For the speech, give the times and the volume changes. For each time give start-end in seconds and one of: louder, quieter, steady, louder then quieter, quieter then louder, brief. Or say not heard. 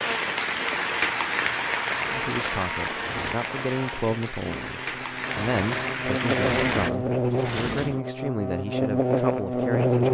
2.0-10.0 steady.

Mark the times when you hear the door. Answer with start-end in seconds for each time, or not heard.
1.9-3.4, 5.2-8.0.